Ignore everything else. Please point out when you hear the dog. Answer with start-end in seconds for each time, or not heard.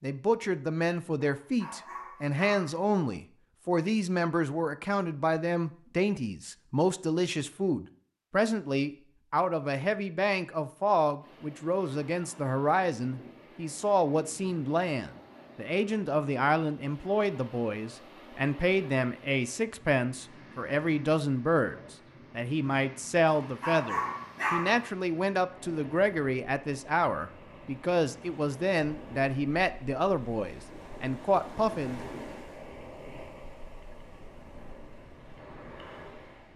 1.2-2.9, 23.4-24.9.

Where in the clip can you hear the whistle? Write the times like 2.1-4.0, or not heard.
not heard.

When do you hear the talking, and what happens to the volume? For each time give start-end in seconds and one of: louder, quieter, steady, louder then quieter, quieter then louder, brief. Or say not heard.
0.0-32.0 steady.